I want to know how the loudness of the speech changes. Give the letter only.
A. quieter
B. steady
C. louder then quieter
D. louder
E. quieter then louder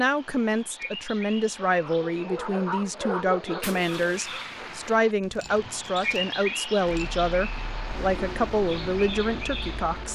B.